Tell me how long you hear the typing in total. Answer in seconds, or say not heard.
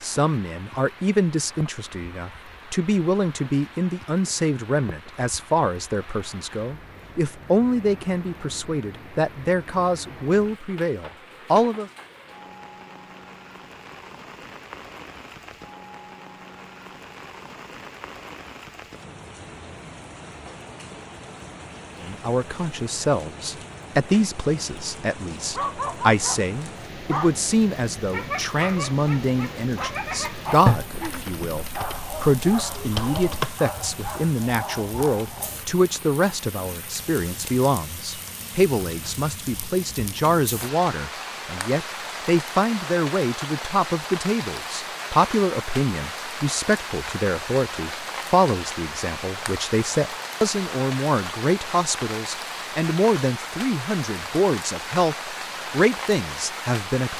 3 s.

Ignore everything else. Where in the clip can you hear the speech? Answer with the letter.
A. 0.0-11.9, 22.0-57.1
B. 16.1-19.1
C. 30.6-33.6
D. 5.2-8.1
A.